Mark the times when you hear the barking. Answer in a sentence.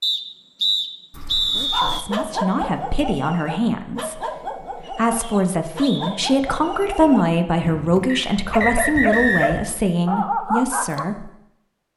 You can hear the barking from 1.1 to 11.1 s.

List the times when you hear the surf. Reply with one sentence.
You can't hear the surf here.